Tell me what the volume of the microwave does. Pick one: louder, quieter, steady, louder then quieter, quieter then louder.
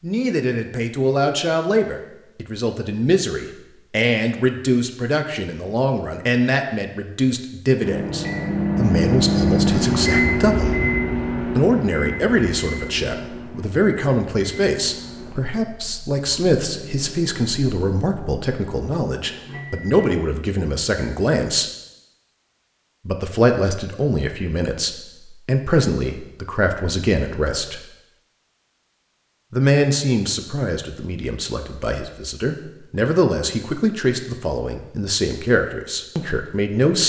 quieter.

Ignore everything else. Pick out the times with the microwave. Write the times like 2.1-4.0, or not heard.
7.8-20.1.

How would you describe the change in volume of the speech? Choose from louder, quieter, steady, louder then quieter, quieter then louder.
steady.